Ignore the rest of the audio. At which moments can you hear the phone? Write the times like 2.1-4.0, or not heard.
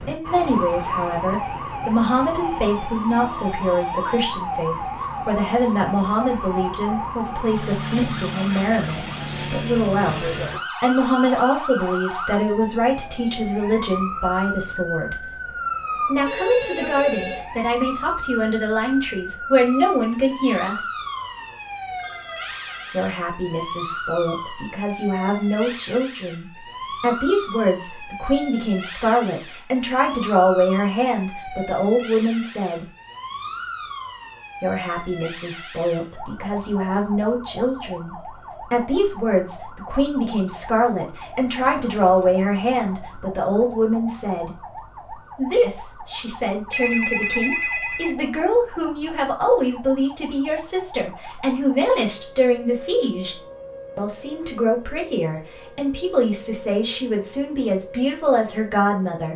16.2-17.4, 21.9-23.2, 46.7-48.2.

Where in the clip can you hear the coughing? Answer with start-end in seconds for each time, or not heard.
not heard.